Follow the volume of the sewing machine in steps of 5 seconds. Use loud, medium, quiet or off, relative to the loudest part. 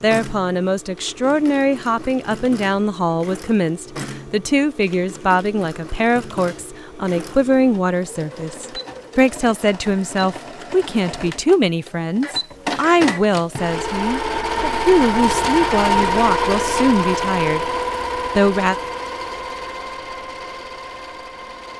quiet, quiet, medium, loud, quiet.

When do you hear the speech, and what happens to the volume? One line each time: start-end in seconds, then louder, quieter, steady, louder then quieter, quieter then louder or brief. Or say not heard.
0.0-17.6 steady
18.2-18.8 brief.